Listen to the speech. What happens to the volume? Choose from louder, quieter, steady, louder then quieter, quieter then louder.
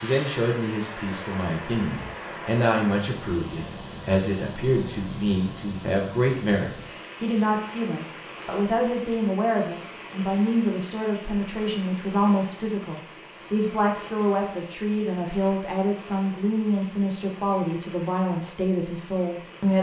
steady.